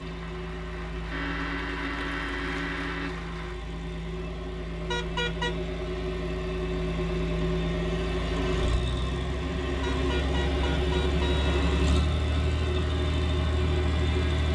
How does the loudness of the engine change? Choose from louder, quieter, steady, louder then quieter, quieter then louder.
louder.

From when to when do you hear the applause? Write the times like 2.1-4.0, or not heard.
0.0-3.6.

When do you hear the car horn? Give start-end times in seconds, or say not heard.
1.1-3.1, 4.9-5.5, 9.8-11.7.